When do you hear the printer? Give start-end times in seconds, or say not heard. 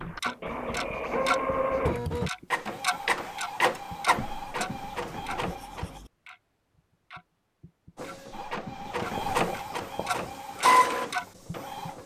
0.0-6.0, 8.0-12.0.